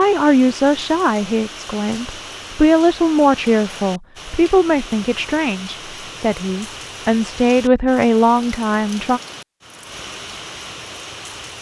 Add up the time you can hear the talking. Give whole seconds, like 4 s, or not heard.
9 s.